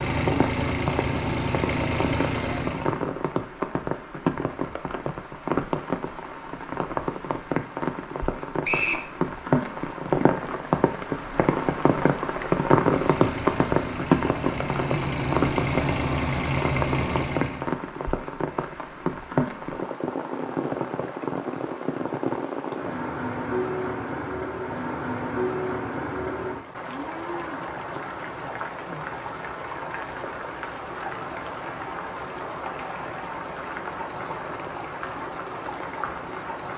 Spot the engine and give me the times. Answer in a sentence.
You can hear the engine from 0.0 to 3.0 s and from 12.7 to 17.7 s.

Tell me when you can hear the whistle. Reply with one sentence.
You can hear the whistle from 8.6 to 9.1 s.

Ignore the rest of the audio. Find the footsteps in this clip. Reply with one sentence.
The footsteps can't be heard in this clip.